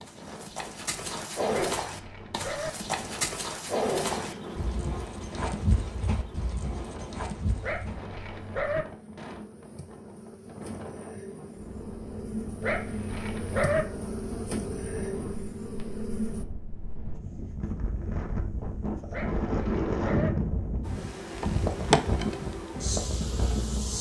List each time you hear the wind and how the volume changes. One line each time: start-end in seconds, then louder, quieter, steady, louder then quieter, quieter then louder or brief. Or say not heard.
0.0-23.9 louder.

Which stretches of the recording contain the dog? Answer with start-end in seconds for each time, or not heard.
1.5-2.7, 7.6-8.8, 12.6-13.8, 19.1-20.3.